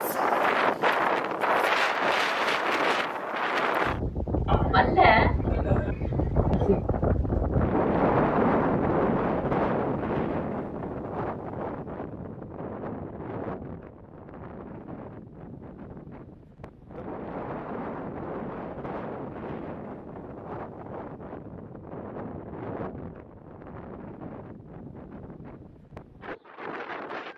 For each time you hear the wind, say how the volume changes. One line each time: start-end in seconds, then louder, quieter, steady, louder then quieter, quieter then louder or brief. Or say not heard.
0.0-27.3 quieter.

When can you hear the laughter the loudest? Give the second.
5 s.